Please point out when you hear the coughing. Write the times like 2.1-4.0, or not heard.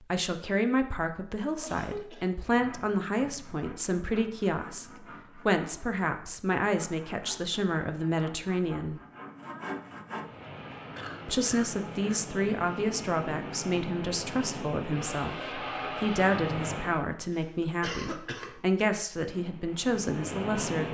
1.6-2.3, 10.9-12.2, 17.3-18.9.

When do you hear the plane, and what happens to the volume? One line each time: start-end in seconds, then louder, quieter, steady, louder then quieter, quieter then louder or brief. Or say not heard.
10.2-17.0 louder
19.1-20.8 brief.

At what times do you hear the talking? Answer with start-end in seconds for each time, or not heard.
0.0-9.0, 11.2-20.8.